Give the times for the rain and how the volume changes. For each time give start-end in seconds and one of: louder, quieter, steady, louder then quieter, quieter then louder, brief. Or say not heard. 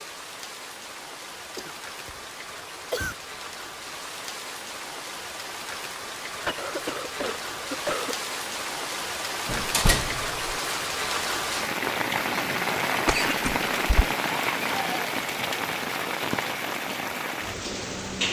0.0-18.2 louder.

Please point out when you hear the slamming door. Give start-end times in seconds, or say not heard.
9.4-10.5.